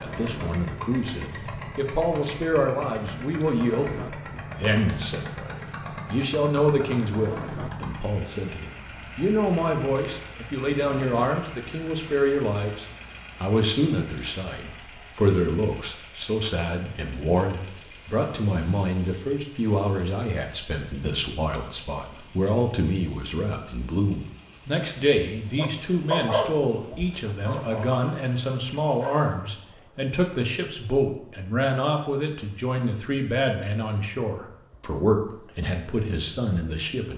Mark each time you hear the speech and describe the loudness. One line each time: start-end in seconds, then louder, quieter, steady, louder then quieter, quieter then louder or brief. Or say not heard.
0.0-37.1 steady.